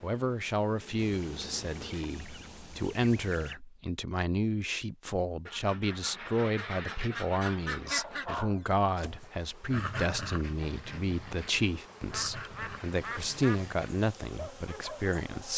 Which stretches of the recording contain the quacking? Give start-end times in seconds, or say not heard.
0.9-3.5, 5.5-8.2, 12.1-13.7.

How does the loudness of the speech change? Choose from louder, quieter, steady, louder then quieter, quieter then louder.
steady.